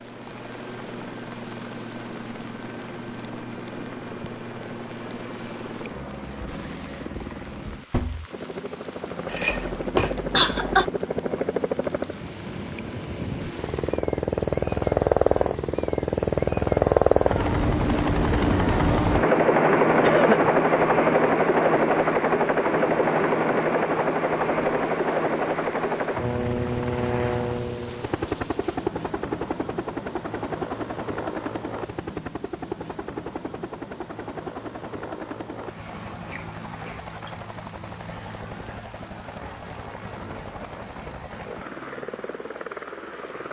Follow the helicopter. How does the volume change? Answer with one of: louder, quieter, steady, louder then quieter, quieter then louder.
louder then quieter.